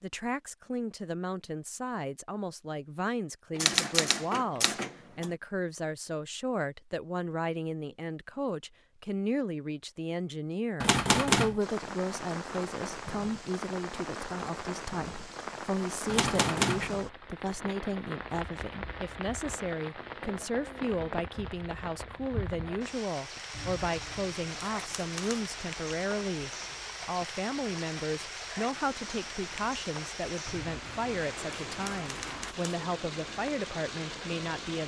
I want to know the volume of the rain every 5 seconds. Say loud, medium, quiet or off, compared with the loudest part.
off, off, loud, loud, loud, loud, loud.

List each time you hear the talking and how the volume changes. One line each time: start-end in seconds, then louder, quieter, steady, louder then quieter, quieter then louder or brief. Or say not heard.
0.0-34.8 steady.